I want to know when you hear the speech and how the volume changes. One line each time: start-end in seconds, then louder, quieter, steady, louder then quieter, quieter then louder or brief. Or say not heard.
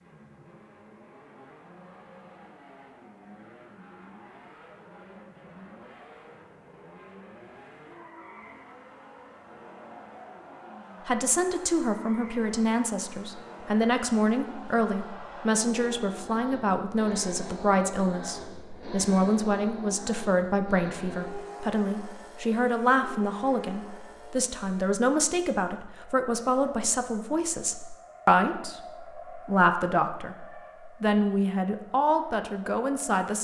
11.1-33.4 steady.